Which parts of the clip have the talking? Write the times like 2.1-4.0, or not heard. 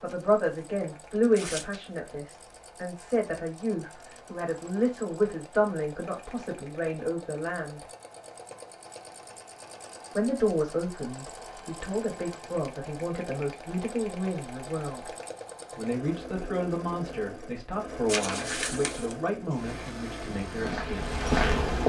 0.0-7.8, 10.2-15.1, 15.8-21.1.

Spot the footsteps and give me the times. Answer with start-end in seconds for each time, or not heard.
19.4-21.8.